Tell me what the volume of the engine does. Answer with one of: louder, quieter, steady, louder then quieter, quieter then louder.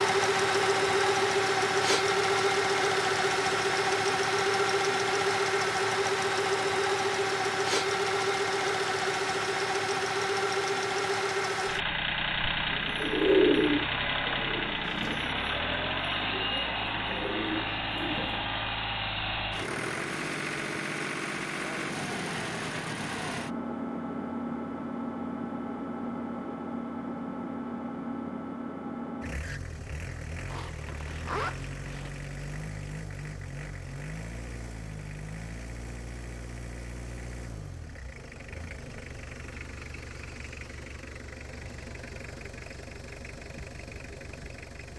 quieter.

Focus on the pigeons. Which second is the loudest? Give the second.
13 s.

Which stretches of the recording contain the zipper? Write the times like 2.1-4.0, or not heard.
30.4-32.1.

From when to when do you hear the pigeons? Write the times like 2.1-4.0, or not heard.
12.7-18.4.